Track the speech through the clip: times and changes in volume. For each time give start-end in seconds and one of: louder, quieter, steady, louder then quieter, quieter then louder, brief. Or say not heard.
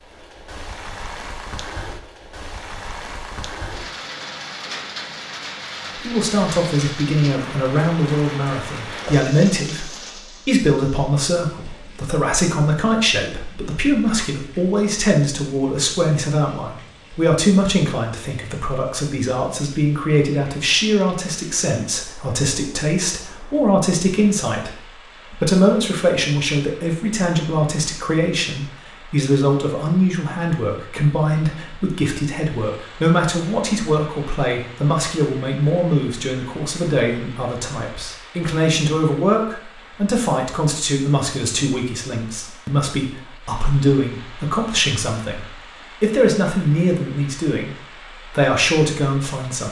6.0-49.6 steady.